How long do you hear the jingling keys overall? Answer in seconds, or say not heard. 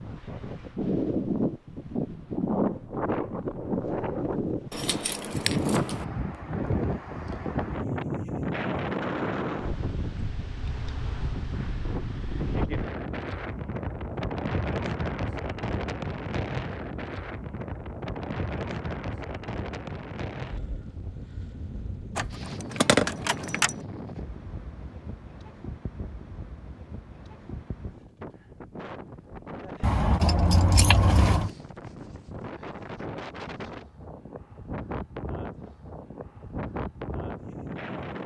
5 s.